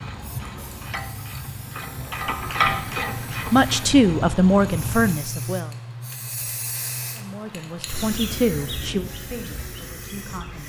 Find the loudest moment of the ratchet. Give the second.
3 s.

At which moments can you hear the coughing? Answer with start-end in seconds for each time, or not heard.
not heard.